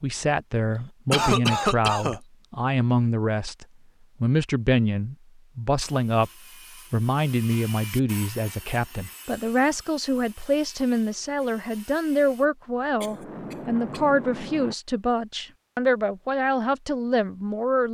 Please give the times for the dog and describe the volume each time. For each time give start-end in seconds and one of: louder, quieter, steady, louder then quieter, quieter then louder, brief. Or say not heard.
not heard.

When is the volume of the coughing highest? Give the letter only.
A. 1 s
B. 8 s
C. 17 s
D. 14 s
A.